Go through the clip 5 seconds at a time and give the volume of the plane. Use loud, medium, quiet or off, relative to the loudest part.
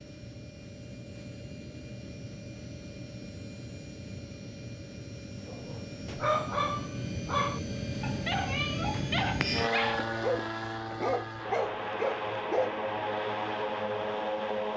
medium, loud, loud.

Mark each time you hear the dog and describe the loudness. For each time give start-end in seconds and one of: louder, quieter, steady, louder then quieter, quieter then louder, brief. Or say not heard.
5.5-12.7 steady.